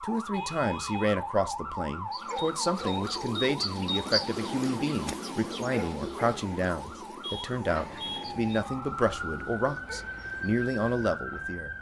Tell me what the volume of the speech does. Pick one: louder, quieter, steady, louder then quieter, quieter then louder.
steady.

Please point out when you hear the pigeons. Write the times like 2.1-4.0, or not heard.
2.0-11.2.